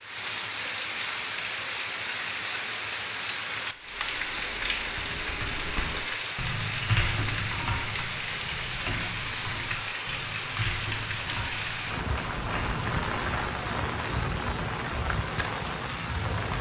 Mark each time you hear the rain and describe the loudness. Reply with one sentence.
You can hear the rain from 0.0 to 16.5 s, at a steady volume.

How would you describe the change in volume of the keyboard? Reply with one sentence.
The loudness of the keyboard goes up, then down.